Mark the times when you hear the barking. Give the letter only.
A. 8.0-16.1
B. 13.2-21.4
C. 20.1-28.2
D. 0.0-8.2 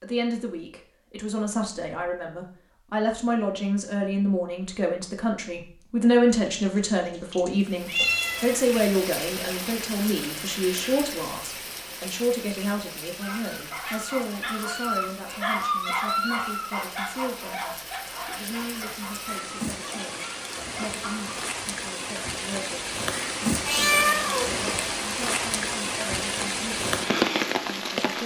B.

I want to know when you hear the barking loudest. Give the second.
16 s.